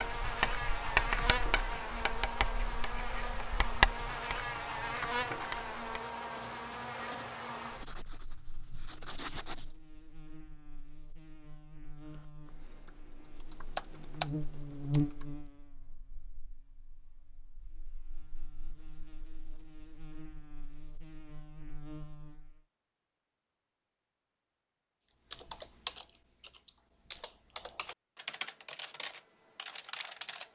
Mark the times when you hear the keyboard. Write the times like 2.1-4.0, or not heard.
11.9-15.2, 25.3-30.4.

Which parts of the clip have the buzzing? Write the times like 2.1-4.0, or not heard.
0.0-22.6.